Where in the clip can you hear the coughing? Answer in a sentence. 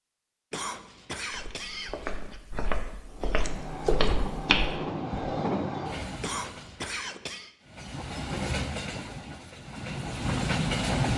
You can hear the coughing from 0.5 to 2.4 s and from 6.2 to 7.5 s.